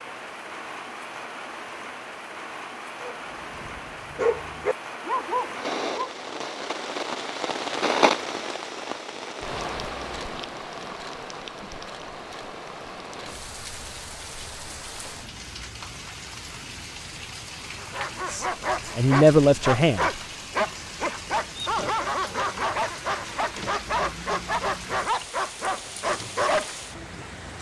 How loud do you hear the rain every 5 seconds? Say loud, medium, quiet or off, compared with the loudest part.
medium, loud, medium, medium, medium, medium.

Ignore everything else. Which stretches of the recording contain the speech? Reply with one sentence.
You can hear the speech from 18.3 to 20.2 s.